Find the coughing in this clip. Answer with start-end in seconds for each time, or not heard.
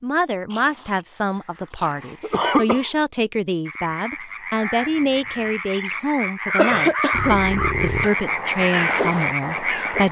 2.2-2.9, 6.5-7.4.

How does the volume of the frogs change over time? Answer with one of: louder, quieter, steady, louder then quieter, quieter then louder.
louder.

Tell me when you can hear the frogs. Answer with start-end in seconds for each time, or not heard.
3.6-10.0.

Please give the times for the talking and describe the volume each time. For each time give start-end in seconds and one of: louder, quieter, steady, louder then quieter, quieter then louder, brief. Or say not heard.
0.0-10.0 steady.